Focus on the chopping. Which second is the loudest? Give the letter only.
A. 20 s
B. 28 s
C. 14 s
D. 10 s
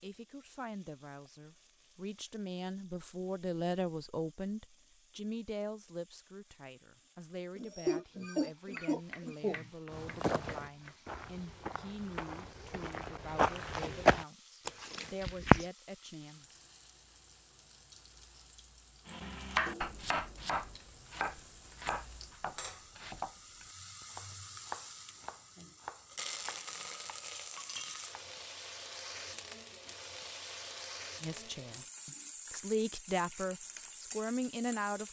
A.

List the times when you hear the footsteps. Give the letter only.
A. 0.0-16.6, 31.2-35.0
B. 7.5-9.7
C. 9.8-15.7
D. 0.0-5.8
C.